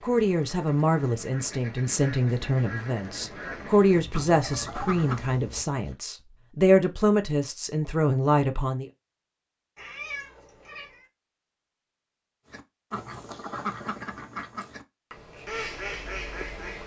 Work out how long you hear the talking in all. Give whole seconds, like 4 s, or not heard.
9 s.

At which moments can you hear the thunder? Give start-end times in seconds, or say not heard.
not heard.